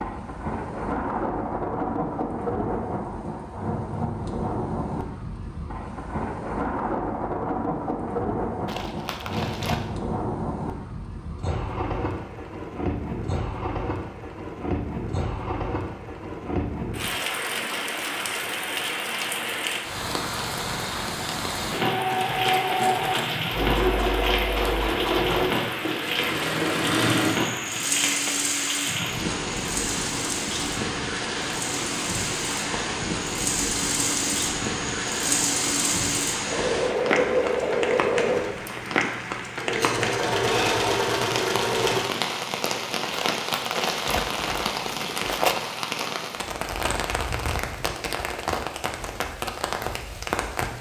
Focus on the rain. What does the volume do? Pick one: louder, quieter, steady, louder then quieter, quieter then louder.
steady.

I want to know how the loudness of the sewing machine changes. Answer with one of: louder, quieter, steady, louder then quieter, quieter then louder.
quieter then louder.